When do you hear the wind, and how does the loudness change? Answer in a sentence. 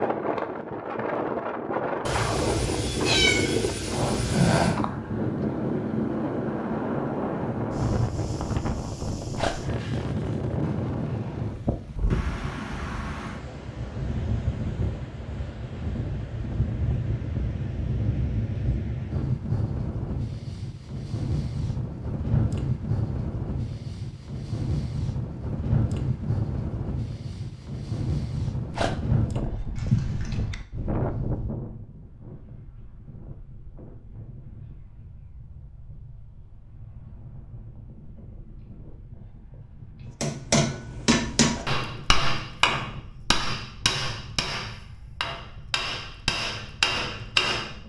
The wind can be heard from 0.0 to 47.8 s, getting quieter.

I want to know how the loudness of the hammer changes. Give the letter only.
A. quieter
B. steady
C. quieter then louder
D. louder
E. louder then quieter
C.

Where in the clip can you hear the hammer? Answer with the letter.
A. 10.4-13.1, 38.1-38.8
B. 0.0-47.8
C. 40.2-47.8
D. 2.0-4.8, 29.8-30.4
C.